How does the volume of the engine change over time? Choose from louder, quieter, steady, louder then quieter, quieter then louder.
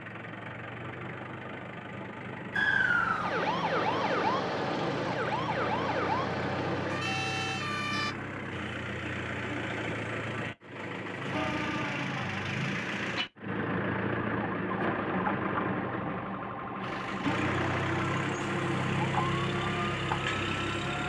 louder.